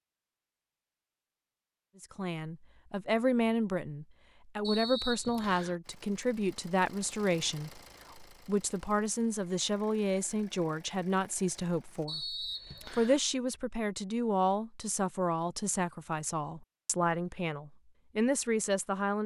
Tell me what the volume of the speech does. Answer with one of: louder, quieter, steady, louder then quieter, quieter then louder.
steady.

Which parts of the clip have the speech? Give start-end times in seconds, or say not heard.
2.0-19.2.